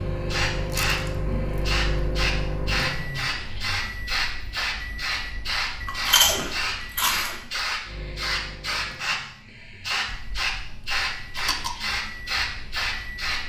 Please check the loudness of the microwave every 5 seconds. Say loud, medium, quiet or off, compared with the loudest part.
loud, medium, medium.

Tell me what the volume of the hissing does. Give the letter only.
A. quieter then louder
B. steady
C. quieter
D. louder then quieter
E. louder
B.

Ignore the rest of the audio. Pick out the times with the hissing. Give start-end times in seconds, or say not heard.
0.0-13.4.